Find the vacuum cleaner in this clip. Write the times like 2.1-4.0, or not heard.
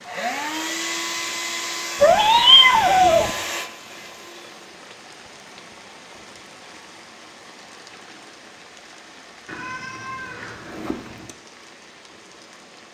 0.0-4.7.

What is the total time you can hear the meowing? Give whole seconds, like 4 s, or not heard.
3 s.